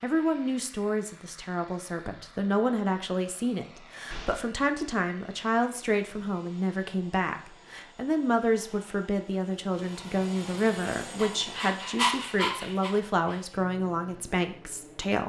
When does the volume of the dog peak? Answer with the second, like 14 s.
12 s.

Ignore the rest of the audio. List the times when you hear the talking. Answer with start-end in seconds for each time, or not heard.
0.0-15.2.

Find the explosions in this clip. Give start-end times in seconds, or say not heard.
4.1-4.5.